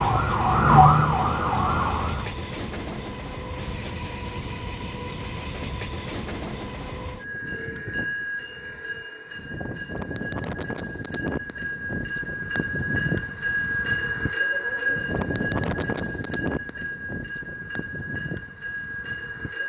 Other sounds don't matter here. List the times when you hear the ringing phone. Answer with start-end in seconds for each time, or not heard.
not heard.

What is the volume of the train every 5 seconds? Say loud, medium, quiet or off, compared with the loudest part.
medium, medium, loud, loud.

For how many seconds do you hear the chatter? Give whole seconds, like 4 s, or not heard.
not heard.